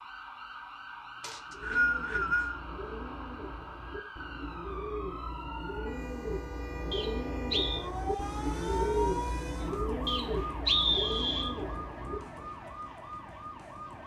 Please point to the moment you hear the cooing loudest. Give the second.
9 s.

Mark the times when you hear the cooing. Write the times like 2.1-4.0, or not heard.
1.4-12.5.